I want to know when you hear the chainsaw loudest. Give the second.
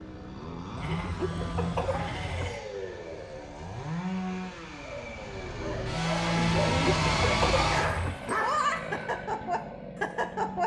7 s.